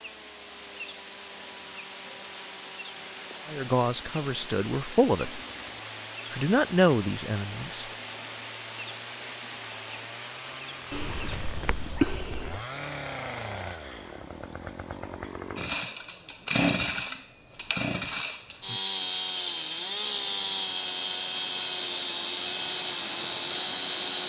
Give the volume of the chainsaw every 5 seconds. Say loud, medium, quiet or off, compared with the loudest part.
quiet, quiet, medium, loud, loud.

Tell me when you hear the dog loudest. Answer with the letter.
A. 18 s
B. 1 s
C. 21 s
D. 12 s
D.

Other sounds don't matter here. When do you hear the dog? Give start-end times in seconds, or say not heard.
10.9-12.6.